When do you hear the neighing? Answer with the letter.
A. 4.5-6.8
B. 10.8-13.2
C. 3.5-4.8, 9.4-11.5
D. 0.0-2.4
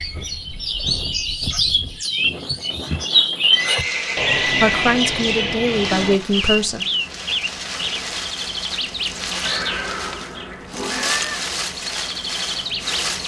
C.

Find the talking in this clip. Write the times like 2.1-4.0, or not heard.
4.5-6.8.